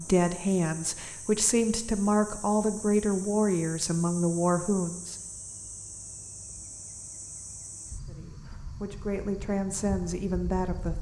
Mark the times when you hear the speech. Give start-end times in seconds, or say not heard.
0.0-5.2, 8.1-10.9.